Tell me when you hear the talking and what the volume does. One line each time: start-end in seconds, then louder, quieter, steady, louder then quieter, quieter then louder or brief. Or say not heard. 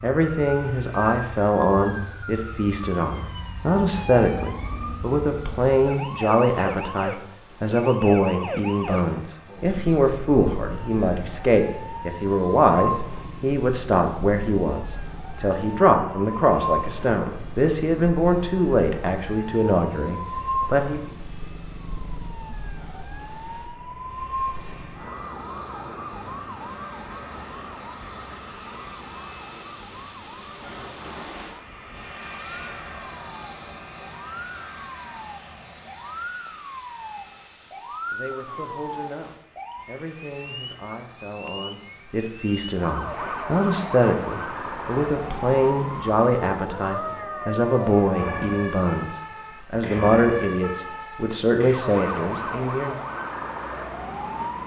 0.0-21.0 steady
38.1-53.0 louder.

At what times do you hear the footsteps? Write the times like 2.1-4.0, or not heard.
not heard.